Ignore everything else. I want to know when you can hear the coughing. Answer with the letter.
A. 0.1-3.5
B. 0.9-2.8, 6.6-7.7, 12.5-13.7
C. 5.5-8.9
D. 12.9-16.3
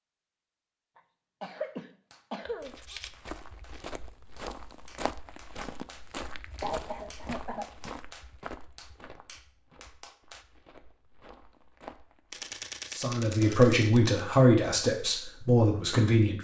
B.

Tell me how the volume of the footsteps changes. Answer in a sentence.
The loudness of the footsteps goes down.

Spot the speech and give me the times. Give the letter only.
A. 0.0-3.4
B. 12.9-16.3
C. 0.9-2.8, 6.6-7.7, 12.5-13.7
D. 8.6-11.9
B.